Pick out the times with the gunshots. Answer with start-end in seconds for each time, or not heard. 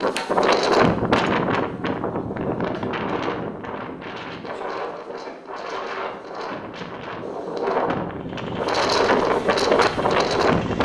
not heard.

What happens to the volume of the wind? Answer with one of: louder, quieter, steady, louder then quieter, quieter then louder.
quieter then louder.